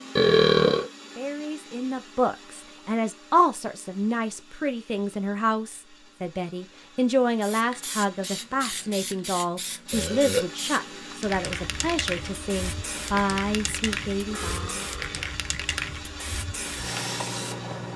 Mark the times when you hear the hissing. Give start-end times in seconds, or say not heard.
7.4-17.9.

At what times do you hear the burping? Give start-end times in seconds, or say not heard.
0.1-0.8, 9.9-10.4, 14.2-15.2.